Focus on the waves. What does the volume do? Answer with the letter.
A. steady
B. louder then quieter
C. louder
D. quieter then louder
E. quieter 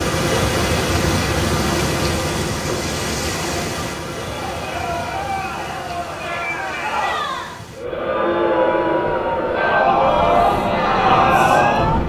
D.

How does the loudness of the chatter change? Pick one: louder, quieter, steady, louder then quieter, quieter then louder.
louder.